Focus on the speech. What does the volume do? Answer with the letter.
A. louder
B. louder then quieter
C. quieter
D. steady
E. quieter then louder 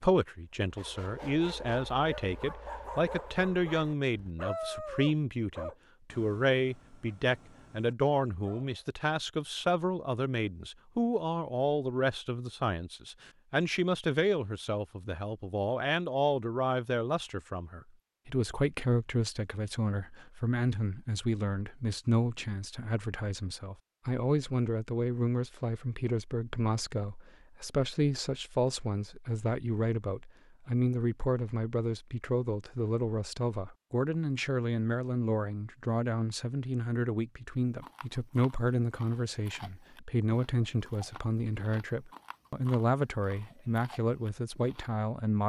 D.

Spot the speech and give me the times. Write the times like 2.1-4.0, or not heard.
0.0-45.4.